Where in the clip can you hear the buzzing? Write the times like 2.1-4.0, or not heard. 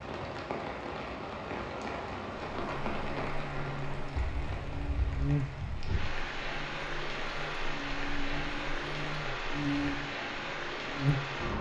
2.6-11.4.